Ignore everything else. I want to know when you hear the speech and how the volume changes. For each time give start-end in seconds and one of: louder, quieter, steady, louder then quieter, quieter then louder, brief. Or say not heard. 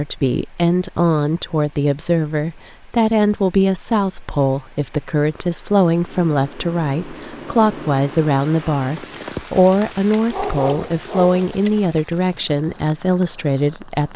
0.0-14.1 steady.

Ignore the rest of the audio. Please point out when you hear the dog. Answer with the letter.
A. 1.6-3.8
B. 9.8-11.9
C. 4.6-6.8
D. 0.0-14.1
B.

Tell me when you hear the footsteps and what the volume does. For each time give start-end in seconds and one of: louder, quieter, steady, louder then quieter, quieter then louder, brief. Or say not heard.
not heard.